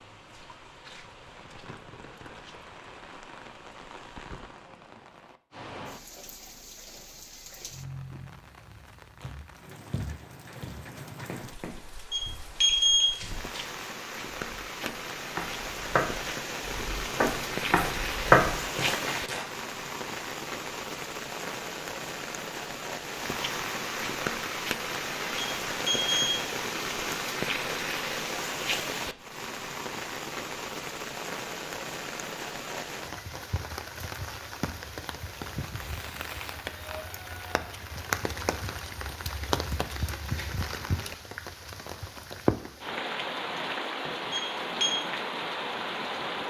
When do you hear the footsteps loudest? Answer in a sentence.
The loudest moment of the footsteps is at 18 seconds.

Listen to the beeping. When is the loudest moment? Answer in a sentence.
The volume of the beeping peaks at 13 seconds.